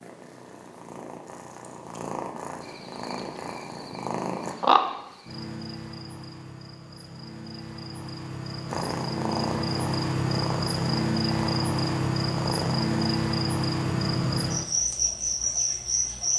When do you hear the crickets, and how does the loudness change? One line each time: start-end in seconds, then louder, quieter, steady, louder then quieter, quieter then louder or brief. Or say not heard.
2.6-16.3 quieter then louder.